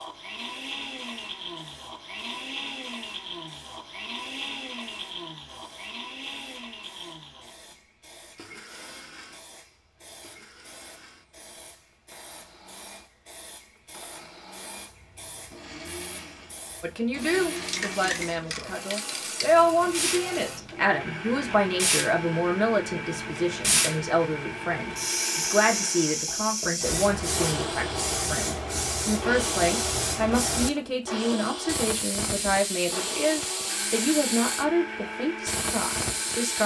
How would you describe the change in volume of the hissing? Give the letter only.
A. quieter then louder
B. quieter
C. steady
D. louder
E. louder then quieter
D.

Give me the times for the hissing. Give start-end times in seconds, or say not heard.
0.0-36.6.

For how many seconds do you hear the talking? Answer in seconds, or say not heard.
20 s.